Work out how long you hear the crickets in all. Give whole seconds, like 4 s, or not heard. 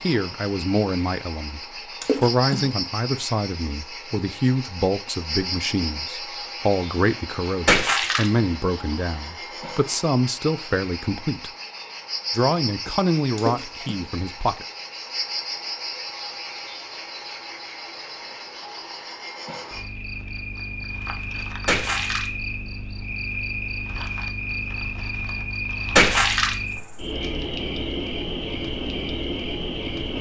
30 s.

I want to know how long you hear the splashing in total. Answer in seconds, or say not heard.
3 s.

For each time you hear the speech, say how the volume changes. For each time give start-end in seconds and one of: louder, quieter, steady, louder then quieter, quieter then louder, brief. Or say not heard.
0.0-11.5 steady
12.3-14.7 brief.